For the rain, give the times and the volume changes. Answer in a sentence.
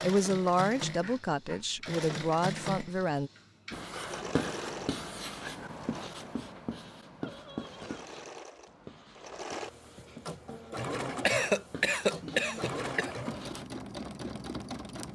You can't hear the rain here.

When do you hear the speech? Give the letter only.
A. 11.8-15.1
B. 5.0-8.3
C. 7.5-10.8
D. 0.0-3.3
D.